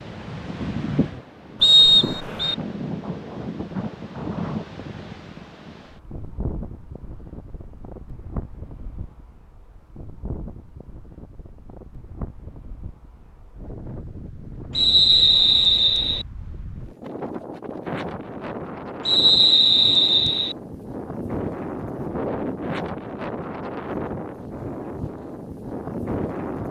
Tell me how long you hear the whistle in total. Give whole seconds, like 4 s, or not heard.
4 s.